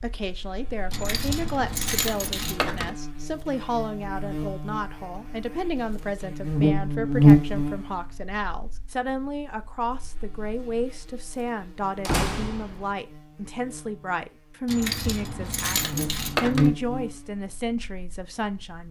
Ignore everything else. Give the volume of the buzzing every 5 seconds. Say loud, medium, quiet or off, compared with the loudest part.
quiet, loud, quiet, medium.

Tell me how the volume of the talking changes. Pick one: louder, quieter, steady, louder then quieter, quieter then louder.
steady.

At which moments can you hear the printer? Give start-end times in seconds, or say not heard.
not heard.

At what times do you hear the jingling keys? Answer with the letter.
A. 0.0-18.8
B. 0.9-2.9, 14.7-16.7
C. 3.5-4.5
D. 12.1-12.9
B.